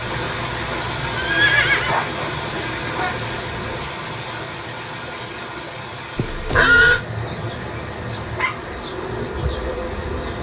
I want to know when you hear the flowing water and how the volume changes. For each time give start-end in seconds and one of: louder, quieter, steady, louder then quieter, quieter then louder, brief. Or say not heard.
0.0-10.3 quieter.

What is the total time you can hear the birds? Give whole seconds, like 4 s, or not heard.
not heard.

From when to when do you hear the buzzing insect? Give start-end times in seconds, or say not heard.
2.5-3.9, 7.2-10.3.